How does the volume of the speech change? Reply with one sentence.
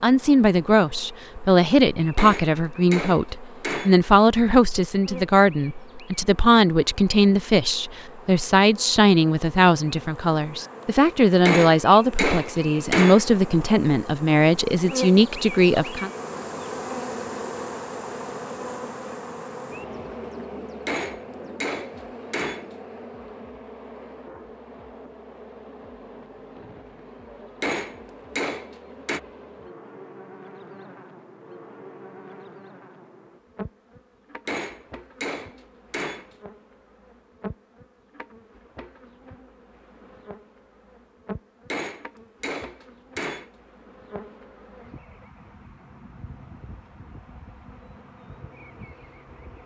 The volume of the speech stays about the same.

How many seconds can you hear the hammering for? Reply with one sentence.
The hammering can be heard for 11 seconds in total.